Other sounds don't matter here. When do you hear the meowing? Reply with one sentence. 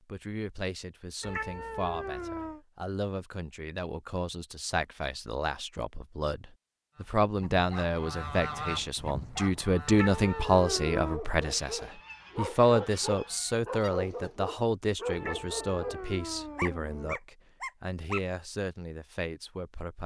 The meowing can be heard from 1.2 to 2.6 s, from 9.8 to 11.2 s and from 15.1 to 17.1 s.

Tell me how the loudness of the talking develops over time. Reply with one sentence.
The volume of the talking goes up, then down.